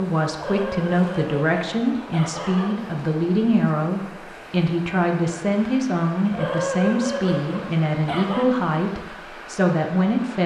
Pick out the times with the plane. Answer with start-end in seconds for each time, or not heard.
not heard.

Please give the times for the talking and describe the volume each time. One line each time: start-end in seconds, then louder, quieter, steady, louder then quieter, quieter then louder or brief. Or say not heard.
0.0-10.4 steady.